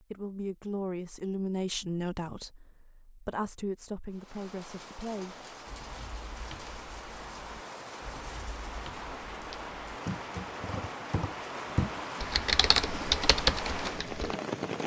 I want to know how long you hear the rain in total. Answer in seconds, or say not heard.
11 s.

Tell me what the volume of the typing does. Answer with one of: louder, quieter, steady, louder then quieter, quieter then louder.
louder.